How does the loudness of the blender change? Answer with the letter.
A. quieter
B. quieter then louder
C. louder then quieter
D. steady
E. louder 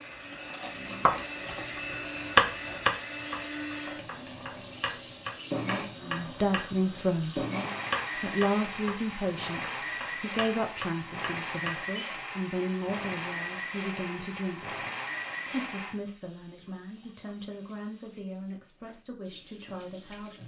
D.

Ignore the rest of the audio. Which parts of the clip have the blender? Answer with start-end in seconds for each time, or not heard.
0.0-15.9.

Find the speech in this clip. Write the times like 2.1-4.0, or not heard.
6.0-7.4, 8.2-14.8, 15.4-20.4.